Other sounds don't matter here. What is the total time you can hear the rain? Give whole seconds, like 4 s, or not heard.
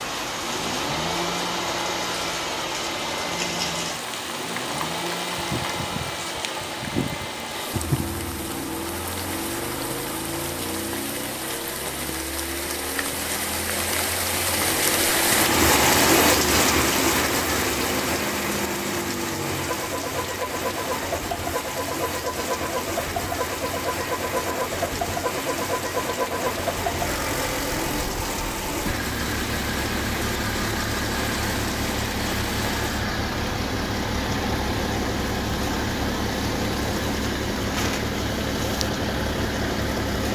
40 s.